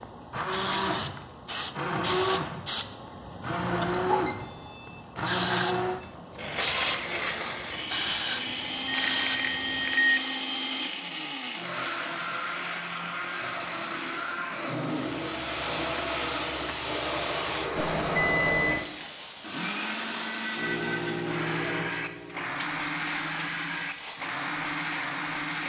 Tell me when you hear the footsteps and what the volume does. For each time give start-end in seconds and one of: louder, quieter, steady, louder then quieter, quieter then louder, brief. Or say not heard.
not heard.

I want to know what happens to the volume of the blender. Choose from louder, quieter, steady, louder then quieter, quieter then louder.
steady.